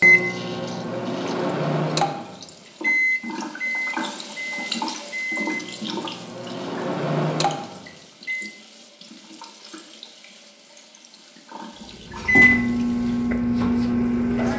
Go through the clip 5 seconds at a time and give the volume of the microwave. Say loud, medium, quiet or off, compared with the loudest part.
loud, medium, loud.